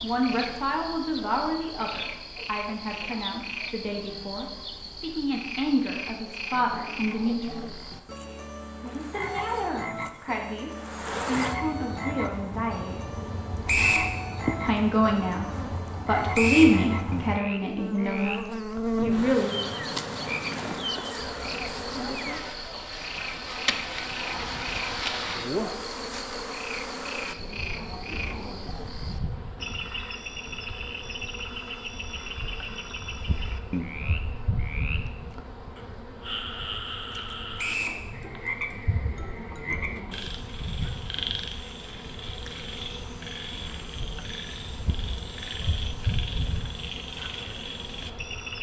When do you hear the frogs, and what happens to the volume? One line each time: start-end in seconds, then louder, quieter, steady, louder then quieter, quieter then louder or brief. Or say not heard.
0.0-48.5 steady.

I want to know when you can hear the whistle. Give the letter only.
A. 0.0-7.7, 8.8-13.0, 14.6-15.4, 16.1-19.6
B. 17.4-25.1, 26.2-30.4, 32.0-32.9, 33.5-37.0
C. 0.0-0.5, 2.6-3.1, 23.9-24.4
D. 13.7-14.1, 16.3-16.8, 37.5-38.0
D.